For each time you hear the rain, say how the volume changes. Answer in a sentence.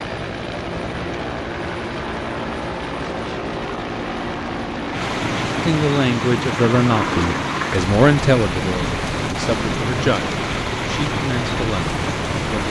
You can hear the rain from 0.2 to 12.6 s, getting louder.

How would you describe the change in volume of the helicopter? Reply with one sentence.
The loudness of the helicopter stays about the same.